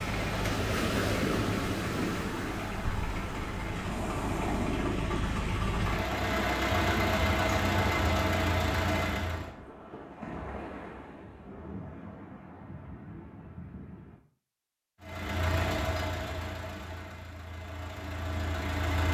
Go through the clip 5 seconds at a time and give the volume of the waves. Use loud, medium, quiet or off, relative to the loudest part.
loud, medium, medium, off.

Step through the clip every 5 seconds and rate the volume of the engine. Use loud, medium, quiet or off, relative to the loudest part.
medium, loud, off, medium.